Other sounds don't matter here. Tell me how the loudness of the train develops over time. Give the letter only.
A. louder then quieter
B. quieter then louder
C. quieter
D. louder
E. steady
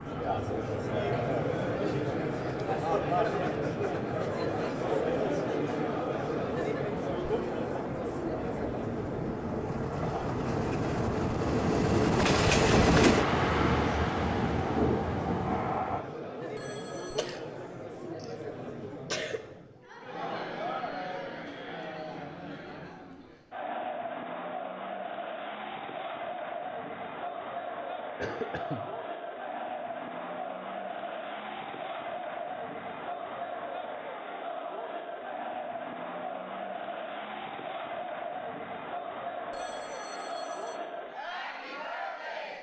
D.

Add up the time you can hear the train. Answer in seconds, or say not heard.
16 s.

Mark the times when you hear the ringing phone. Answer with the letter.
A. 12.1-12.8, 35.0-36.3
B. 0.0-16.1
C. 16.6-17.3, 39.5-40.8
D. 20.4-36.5
C.